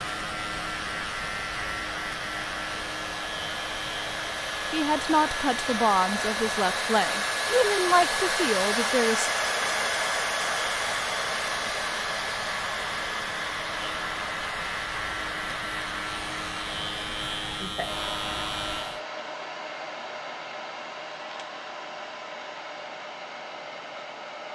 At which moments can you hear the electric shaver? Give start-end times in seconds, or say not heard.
0.0-19.0.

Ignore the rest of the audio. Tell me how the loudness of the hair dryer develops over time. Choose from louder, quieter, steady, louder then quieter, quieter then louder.
louder then quieter.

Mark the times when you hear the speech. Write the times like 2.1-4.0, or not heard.
4.7-9.3.